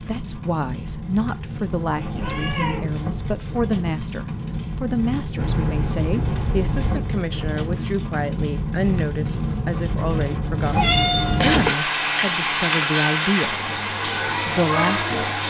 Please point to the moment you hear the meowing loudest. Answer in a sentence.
The volume of the meowing peaks at 11 seconds.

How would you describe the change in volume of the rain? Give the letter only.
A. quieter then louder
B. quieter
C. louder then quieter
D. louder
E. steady
D.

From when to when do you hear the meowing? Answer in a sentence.
The meowing can be heard from 1.9 to 2.9 s, from 5.3 to 7.0 s and from 10.7 to 11.8 s.